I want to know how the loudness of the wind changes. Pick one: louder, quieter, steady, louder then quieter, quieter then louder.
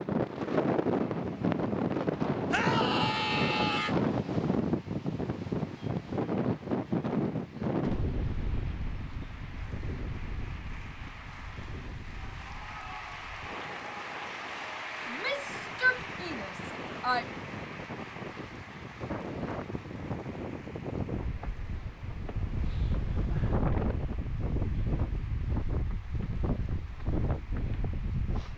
quieter then louder.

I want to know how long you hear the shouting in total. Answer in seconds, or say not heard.
4 s.